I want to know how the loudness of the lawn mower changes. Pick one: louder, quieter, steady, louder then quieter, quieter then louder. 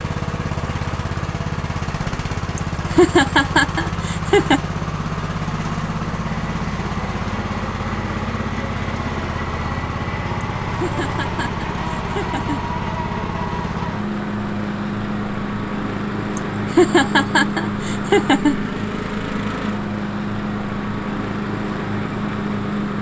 steady.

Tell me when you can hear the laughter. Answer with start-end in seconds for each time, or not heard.
2.5-4.6, 10.4-12.6, 16.4-18.6.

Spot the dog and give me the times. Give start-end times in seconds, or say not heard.
not heard.